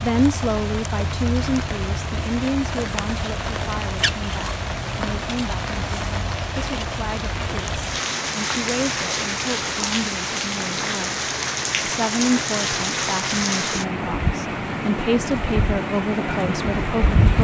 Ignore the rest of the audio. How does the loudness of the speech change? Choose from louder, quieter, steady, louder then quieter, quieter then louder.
quieter then louder.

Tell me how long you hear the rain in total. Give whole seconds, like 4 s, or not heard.
17 s.